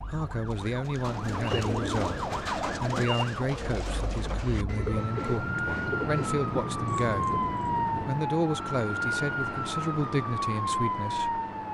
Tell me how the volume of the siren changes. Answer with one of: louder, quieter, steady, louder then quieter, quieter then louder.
louder.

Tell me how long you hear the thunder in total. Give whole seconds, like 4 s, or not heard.
3 s.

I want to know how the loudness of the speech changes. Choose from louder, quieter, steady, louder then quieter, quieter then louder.
steady.